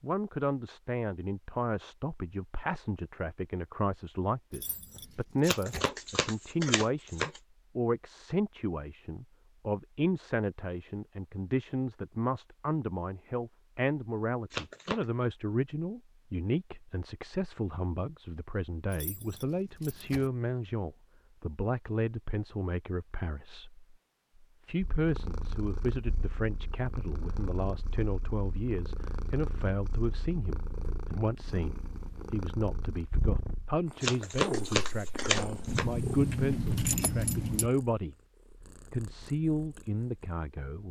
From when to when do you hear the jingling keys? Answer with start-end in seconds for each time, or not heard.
4.5-5.9, 18.9-20.3, 35.6-37.7.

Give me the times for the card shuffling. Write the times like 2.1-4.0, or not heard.
5.5-7.4, 14.5-15.1, 34.0-35.9.